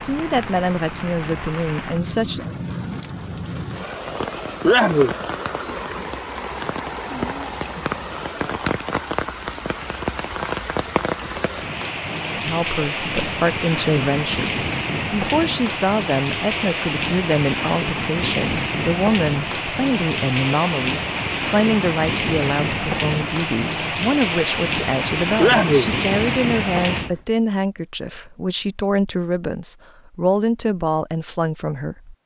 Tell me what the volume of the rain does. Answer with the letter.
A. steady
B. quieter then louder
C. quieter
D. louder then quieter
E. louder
E.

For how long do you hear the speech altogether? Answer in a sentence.
You can hear the speech for 22 seconds altogether.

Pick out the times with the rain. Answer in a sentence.
You can hear the rain from 0.0 to 27.2 s.